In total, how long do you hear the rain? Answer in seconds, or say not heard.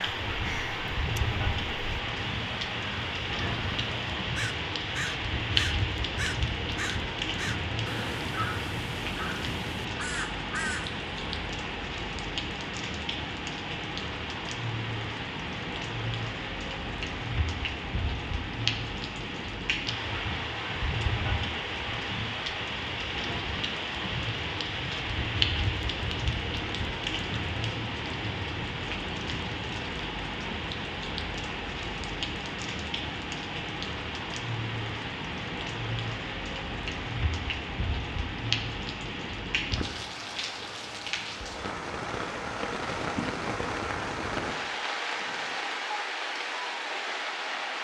48 s.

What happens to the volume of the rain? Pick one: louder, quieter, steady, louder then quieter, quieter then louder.
steady.